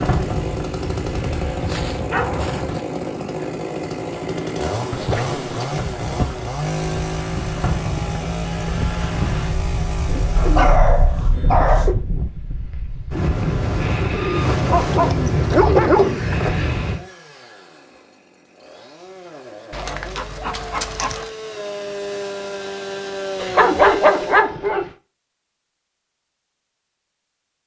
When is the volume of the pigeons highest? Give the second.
16 s.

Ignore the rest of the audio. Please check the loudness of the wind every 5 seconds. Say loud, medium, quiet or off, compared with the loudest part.
medium, medium, loud, loud, off, off.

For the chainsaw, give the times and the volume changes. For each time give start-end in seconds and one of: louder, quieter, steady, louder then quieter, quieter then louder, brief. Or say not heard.
0.0-10.8 steady
15.9-24.4 louder.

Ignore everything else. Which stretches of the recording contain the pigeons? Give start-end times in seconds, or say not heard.
10.1-12.1, 14.1-16.7.